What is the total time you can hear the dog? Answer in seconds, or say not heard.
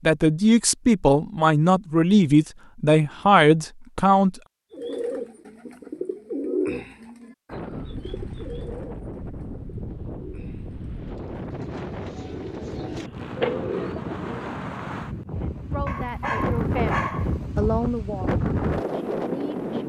2 s.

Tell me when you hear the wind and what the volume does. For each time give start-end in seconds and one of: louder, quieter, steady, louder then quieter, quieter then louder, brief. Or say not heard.
7.5-19.8 louder.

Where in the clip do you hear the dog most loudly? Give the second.
17 s.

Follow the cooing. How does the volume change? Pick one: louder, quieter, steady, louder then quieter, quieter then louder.
quieter then louder.